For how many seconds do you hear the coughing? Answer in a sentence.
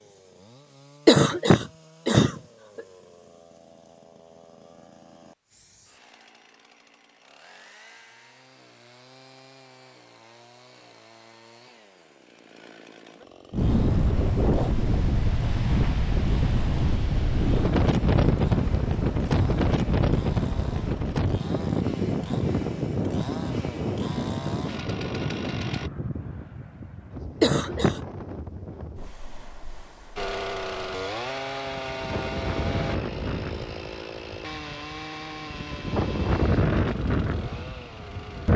You can hear the coughing for 2 seconds altogether.